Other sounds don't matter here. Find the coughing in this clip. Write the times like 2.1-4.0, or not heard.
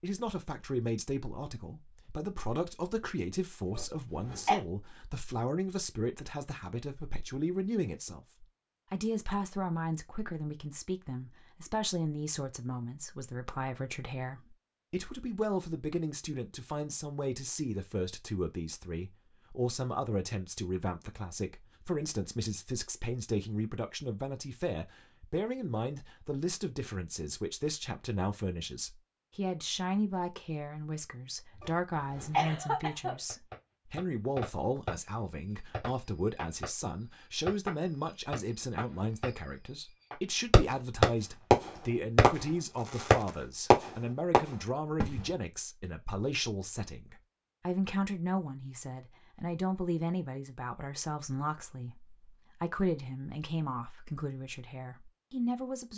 3.7-4.6, 31.6-33.1.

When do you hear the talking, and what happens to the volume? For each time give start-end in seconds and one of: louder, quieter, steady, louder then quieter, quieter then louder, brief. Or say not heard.
0.0-55.9 steady.